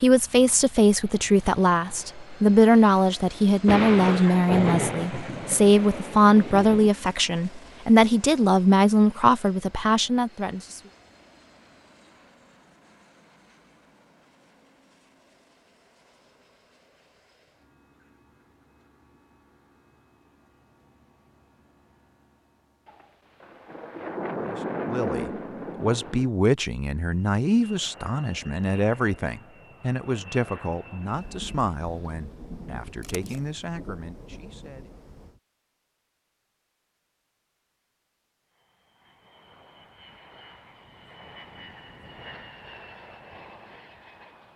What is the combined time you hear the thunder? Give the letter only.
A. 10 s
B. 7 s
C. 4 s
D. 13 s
A.